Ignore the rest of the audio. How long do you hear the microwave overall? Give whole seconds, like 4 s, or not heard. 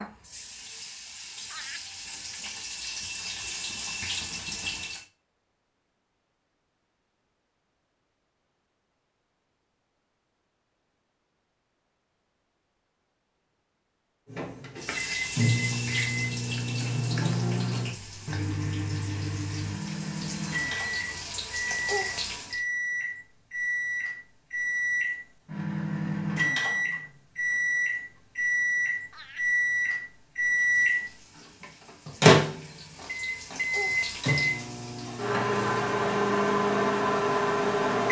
24 s.